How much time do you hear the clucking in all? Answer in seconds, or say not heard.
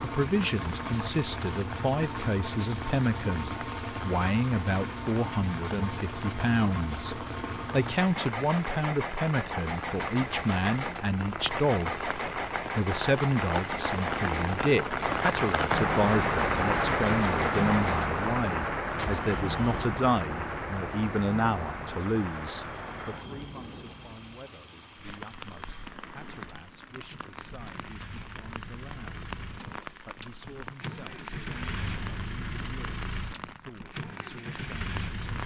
not heard.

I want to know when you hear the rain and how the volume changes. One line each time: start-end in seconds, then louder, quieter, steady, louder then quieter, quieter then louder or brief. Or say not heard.
0.2-35.4 louder then quieter.